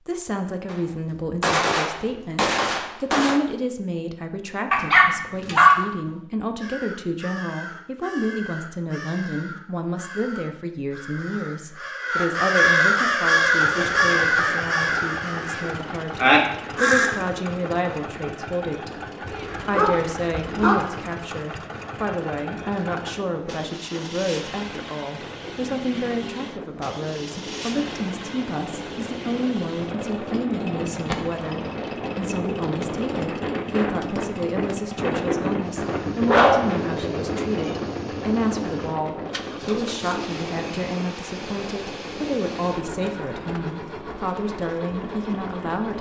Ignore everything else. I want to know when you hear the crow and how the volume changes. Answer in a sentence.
You can hear the crow from 6.6 to 17.1 s, getting louder.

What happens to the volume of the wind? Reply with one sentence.
The loudness of the wind goes up, then down.